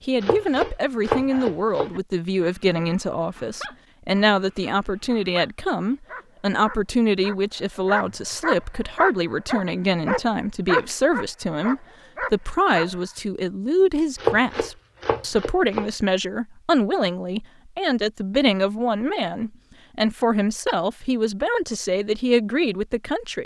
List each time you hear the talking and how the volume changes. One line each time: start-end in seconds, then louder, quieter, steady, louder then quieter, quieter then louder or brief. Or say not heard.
0.1-23.4 steady.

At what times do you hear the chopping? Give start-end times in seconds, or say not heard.
0.2-1.9, 14.2-15.9.